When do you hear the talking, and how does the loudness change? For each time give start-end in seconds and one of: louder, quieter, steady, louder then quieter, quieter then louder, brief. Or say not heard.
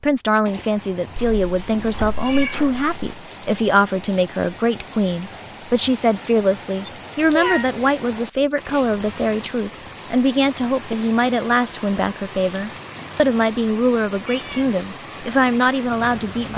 0.0-16.5 steady.